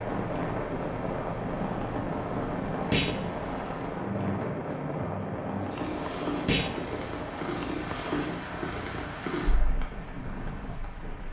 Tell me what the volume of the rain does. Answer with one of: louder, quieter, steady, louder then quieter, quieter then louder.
quieter.